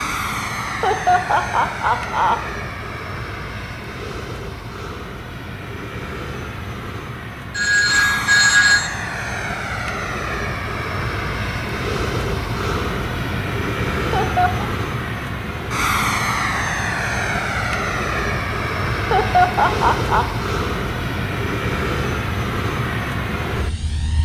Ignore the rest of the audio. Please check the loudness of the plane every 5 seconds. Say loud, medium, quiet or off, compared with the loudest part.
medium, medium, loud, loud, loud.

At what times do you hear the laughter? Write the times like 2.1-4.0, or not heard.
0.7-2.4, 13.9-14.7, 18.9-20.2.